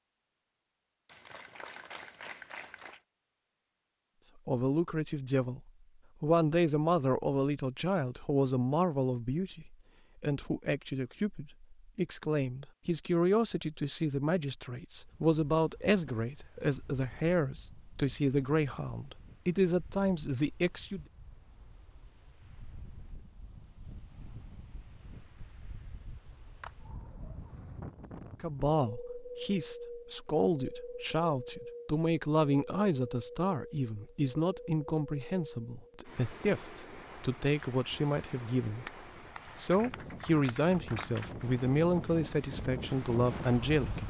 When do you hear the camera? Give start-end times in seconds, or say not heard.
not heard.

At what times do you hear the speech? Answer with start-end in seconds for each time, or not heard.
4.5-21.1, 28.4-38.9, 39.5-44.0.